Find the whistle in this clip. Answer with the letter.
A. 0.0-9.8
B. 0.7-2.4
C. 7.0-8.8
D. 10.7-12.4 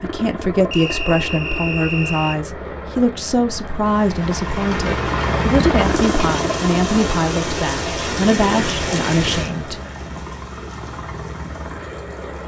B.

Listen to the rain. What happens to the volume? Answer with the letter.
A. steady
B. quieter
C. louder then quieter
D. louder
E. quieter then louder
B.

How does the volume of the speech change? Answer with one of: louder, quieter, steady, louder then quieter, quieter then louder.
steady.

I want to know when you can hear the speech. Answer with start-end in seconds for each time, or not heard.
0.0-9.8.